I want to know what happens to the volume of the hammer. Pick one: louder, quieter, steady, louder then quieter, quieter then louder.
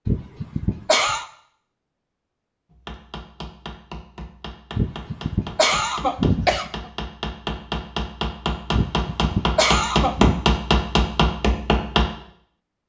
louder.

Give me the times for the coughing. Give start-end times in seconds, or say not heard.
0.1-1.2, 4.8-6.9, 8.8-10.4.